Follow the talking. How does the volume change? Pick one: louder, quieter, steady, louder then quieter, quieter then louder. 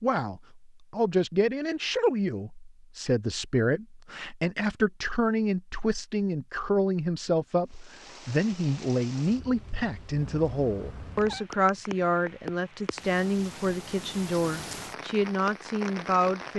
steady.